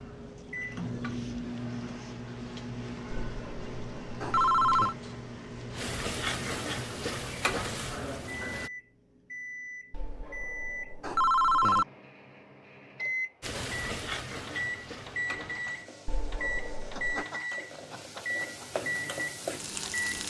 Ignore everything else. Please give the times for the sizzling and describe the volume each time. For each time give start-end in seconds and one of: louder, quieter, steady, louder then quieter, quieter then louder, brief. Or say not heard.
0.0-8.7 louder
13.4-20.2 quieter then louder.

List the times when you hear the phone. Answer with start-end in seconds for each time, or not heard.
3.1-5.0, 9.9-11.8, 16.1-17.2.